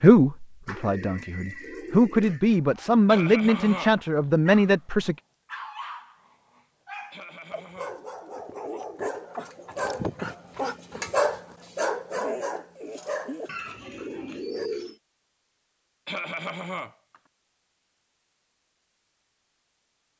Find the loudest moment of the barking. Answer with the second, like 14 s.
11 s.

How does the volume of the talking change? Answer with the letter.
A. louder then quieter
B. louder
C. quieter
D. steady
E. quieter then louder
B.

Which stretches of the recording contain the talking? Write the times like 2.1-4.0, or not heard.
0.0-5.2.